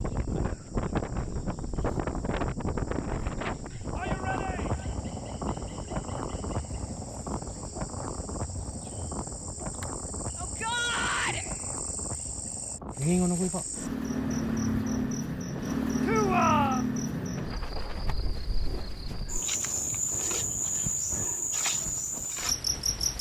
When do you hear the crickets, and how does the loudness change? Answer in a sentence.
You can hear the crickets from 0.0 to 23.1 s, getting louder.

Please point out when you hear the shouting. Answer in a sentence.
The shouting can be heard from 4.0 to 4.9 s, from 10.3 to 11.4 s and from 16.1 to 16.9 s.